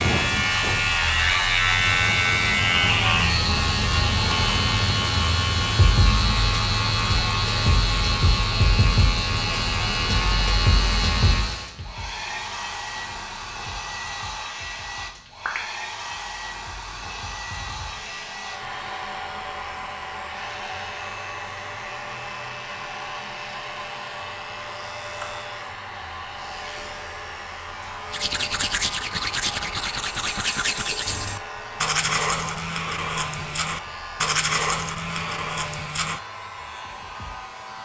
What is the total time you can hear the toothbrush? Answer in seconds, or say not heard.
8 s.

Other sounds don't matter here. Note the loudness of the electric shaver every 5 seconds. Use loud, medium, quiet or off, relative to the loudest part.
loud, loud, medium, quiet, quiet, quiet, quiet, quiet.